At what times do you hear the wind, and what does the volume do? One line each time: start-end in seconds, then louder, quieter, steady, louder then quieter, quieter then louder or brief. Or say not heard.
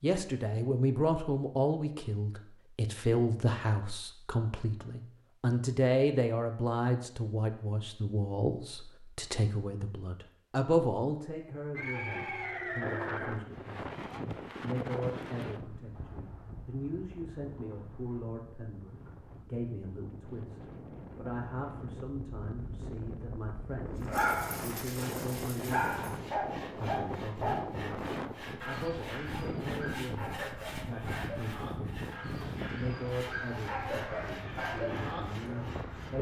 12.8-36.1 quieter then louder.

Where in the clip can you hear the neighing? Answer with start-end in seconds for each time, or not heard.
11.7-13.4.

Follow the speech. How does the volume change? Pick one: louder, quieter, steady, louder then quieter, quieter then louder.
quieter.